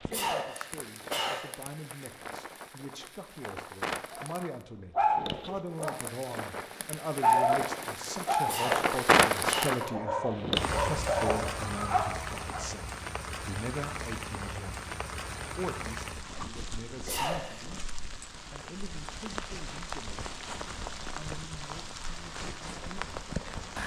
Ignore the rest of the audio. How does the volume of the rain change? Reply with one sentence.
The volume of the rain goes up, then down.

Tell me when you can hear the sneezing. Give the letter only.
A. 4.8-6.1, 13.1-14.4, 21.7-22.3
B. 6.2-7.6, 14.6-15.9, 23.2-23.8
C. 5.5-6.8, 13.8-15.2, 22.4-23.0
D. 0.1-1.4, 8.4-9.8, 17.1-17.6
D.